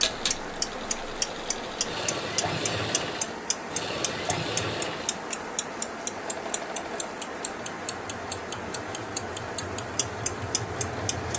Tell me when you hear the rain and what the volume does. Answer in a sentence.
The rain can be heard from 0.0 to 11.3 s, at a steady volume.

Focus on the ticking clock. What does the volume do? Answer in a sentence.
The volume of the ticking clock goes down.